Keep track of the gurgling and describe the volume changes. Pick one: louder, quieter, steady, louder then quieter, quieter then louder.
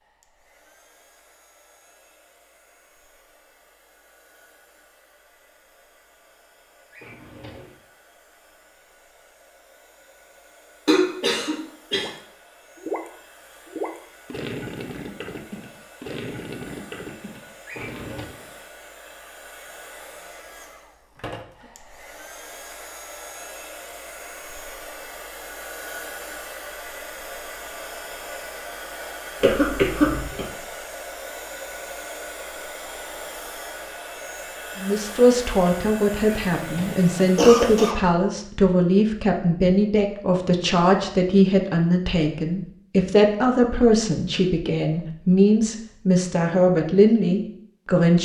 quieter.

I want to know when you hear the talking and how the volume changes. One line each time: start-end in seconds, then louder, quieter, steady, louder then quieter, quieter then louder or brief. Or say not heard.
34.8-48.1 steady.